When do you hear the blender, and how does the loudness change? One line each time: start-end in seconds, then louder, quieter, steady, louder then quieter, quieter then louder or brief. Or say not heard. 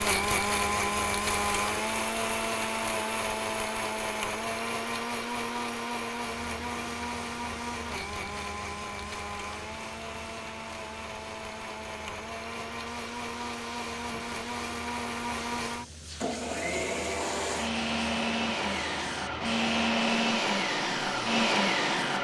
0.0-22.1 quieter then louder.